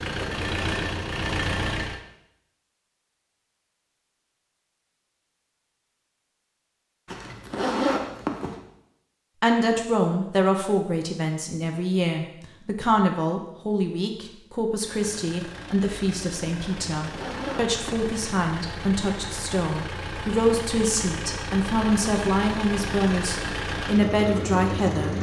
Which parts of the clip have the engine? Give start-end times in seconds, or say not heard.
0.0-2.0, 14.8-25.1.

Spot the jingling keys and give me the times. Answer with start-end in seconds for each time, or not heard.
not heard.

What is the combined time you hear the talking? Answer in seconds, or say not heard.
16 s.